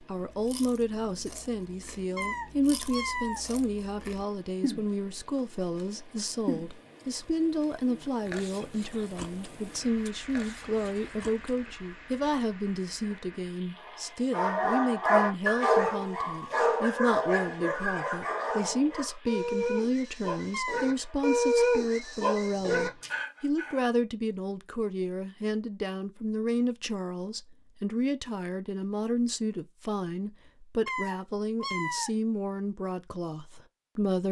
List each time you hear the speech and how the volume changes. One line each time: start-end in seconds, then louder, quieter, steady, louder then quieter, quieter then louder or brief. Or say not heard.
0.0-34.2 steady.